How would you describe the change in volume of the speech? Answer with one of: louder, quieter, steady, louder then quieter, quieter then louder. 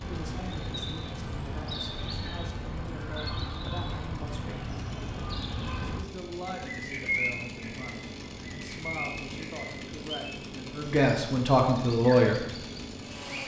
louder.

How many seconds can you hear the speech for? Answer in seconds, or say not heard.
11 s.